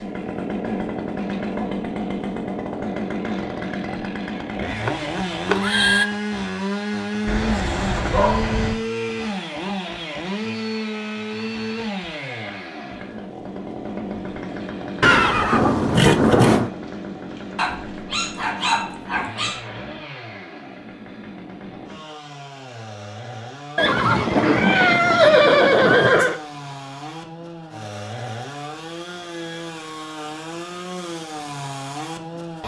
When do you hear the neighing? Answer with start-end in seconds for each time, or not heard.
4.7-6.0, 15.0-16.7, 23.8-26.4.